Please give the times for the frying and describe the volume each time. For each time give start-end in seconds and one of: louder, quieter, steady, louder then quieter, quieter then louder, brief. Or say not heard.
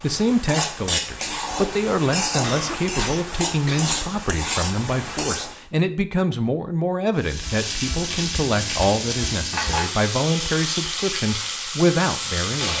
0.0-5.6 steady
7.2-12.7 steady.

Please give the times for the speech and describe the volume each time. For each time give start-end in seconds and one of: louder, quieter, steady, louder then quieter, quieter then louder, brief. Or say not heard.
0.0-12.7 steady.